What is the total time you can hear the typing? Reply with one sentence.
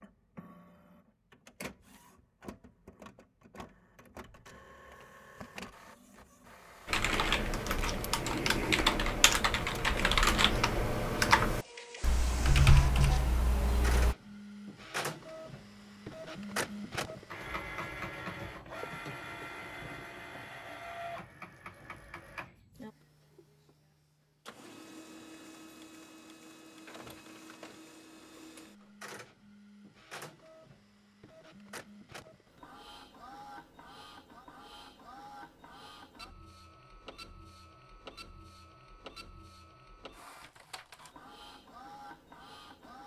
You can hear the typing for 7 seconds altogether.